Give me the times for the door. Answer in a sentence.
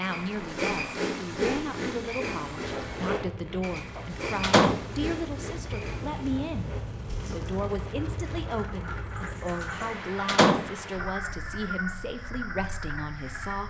The door can be heard from 4.0 to 4.8 s and from 9.8 to 10.7 s.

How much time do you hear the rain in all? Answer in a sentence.
The rain can be heard for 11 seconds in total.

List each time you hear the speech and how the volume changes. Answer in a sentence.
You can hear the speech from 0.0 to 13.6 s, at a steady volume.